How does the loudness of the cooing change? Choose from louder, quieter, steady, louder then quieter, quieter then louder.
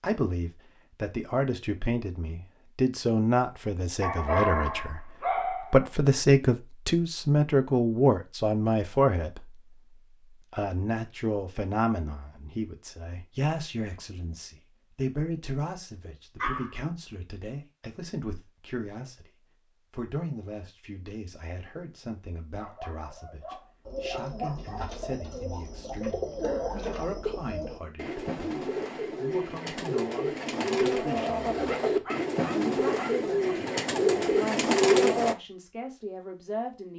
louder.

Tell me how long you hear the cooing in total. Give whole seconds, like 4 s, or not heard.
12 s.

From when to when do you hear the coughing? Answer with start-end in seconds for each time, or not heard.
26.1-27.1.